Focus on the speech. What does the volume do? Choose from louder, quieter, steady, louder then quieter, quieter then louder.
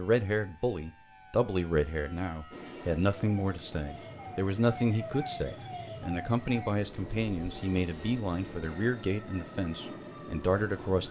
steady.